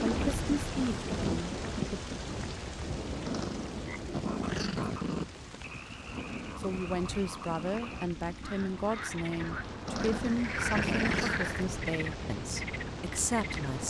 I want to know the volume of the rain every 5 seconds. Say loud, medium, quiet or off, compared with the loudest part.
loud, medium, loud.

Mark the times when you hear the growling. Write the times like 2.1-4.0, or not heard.
3.2-5.2, 9.8-11.4.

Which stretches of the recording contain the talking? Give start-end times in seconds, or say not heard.
0.0-2.0, 6.5-13.8.